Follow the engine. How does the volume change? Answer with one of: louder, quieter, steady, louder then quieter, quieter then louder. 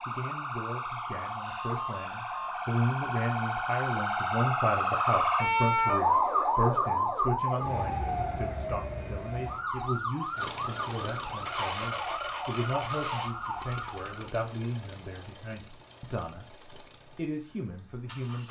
quieter.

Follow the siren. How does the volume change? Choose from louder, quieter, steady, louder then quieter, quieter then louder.
louder then quieter.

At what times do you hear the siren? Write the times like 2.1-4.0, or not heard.
0.0-14.3.